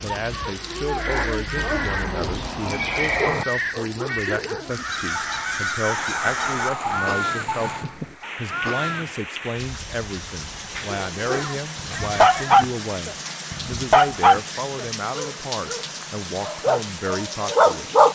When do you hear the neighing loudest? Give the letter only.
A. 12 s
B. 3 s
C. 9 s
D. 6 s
B.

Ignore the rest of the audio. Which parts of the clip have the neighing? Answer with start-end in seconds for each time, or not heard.
1.6-3.5, 11.3-12.7.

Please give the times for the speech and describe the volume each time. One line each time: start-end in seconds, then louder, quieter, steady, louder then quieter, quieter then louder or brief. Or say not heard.
0.0-17.9 steady.